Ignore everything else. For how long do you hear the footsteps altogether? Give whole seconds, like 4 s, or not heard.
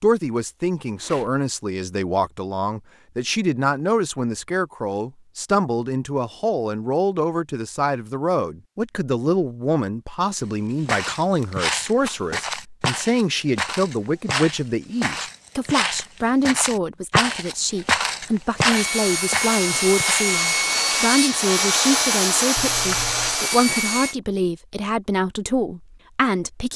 10 s.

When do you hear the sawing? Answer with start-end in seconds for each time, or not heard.
18.7-24.1.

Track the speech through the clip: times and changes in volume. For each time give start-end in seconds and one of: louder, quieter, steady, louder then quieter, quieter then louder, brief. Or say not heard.
0.0-26.7 steady.